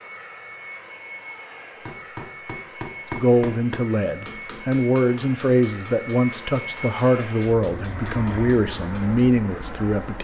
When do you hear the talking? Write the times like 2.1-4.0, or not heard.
3.1-10.2.